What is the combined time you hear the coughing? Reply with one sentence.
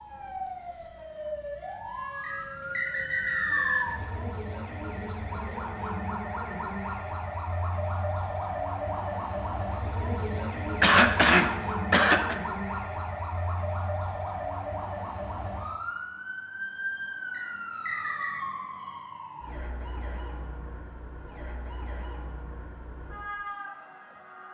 The coughing can be heard for 2 seconds in total.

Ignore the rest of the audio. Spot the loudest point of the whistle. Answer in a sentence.
The volume of the whistle peaks at 4 seconds.